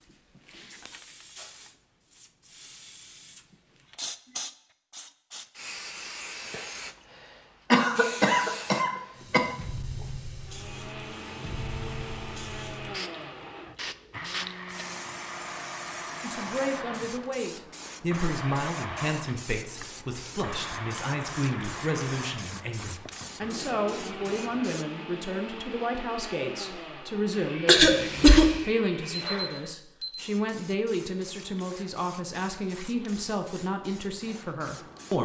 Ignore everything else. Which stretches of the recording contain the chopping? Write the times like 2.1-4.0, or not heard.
not heard.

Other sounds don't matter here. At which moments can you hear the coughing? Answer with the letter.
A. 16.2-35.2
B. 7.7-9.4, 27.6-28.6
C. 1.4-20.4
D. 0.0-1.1
B.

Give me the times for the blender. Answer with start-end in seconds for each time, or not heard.
10.4-29.8.